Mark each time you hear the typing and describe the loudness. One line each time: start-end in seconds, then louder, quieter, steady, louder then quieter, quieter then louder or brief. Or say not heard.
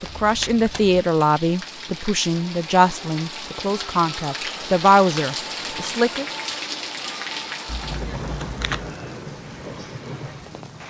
not heard.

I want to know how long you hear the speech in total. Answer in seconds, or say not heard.
6 s.